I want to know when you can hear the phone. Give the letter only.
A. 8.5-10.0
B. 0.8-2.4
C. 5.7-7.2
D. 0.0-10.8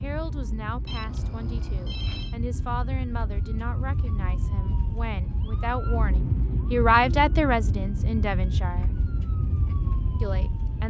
B.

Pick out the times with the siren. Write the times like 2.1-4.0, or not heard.
0.0-10.8.